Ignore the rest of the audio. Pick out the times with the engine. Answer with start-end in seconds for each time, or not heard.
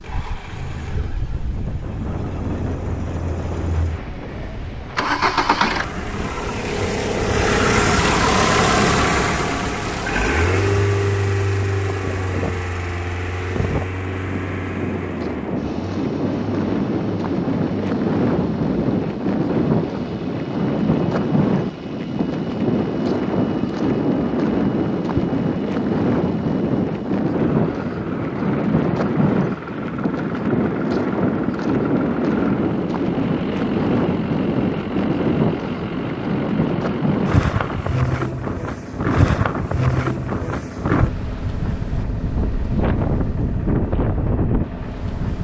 0.0-45.4.